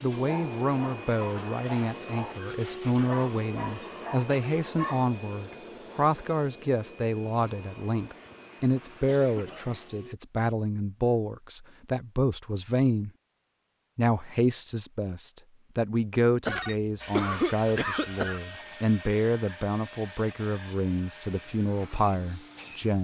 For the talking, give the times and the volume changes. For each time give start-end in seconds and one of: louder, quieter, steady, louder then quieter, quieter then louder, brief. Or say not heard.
0.0-13.1 steady
13.9-22.9 steady.